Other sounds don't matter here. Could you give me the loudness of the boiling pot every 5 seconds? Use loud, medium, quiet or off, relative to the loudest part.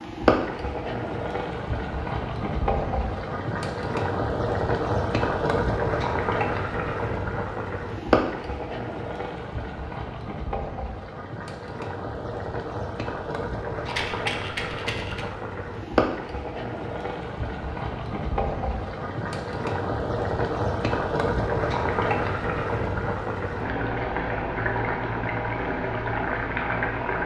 loud, loud, medium, loud, loud, loud.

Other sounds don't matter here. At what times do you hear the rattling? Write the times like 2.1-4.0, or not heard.
13.8-15.2.